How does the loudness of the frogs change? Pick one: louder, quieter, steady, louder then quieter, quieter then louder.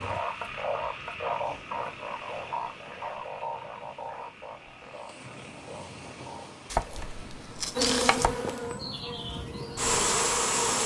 quieter.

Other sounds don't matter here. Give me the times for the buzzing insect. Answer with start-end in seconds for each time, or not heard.
7.8-10.8.